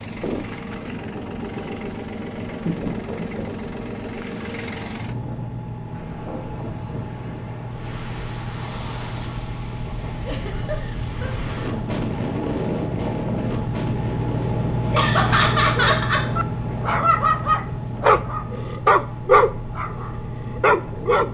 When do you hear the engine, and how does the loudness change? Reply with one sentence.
The engine can be heard from 0.0 to 21.3 s, getting louder then quieter.